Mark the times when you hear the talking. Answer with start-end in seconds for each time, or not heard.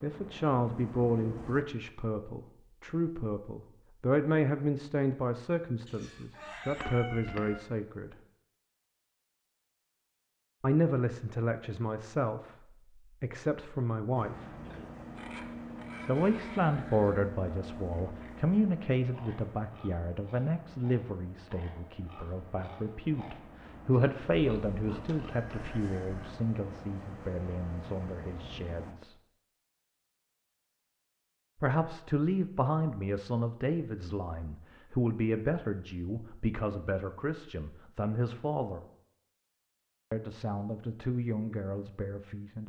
0.0-8.2, 10.6-14.5, 16.1-29.1, 31.6-38.8, 40.1-42.6.